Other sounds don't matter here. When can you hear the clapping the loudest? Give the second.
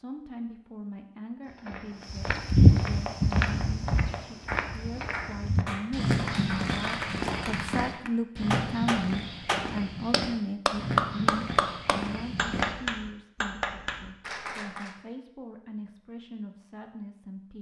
11 s.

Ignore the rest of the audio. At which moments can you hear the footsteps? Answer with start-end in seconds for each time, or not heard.
1.4-12.8.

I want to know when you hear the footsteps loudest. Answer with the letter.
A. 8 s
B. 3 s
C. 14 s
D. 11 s
B.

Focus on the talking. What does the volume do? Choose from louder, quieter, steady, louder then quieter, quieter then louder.
louder then quieter.